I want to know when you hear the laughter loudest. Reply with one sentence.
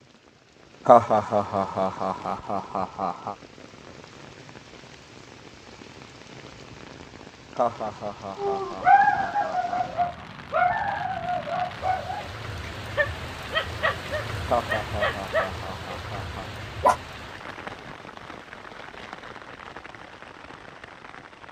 The volume of the laughter peaks at 1 second.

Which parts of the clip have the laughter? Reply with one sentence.
The laughter can be heard from 0.8 to 3.4 s, from 7.5 to 10.2 s and from 14.4 to 16.5 s.